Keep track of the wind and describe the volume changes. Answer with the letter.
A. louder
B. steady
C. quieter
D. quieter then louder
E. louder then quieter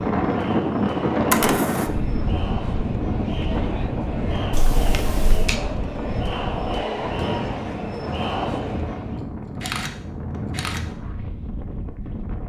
C.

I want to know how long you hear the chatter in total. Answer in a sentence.
You can hear the chatter for 9 seconds altogether.